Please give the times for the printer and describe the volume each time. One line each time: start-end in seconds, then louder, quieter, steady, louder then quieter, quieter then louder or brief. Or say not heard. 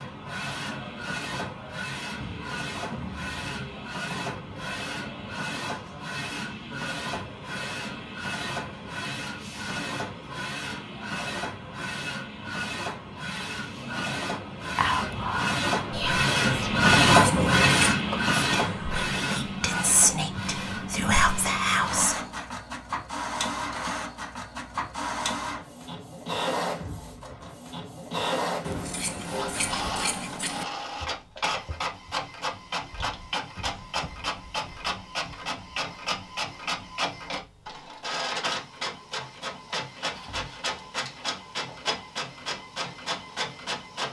0.0-44.0 louder then quieter.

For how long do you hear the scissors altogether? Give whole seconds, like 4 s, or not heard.
3 s.